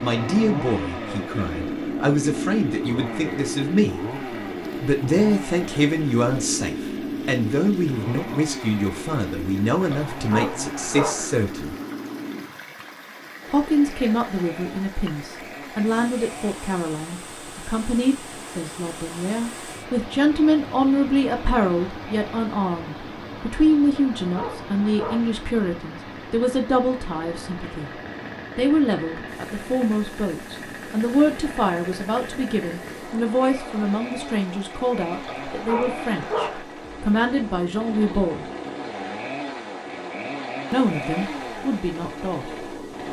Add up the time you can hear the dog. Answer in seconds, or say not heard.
4 s.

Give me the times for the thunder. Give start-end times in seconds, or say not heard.
not heard.